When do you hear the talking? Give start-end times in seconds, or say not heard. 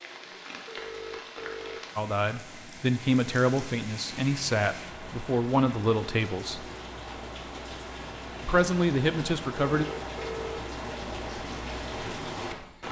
1.9-6.7, 8.4-9.8.